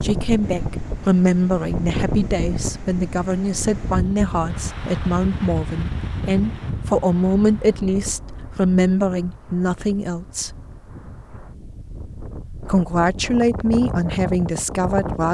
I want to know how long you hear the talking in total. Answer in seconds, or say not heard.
13 s.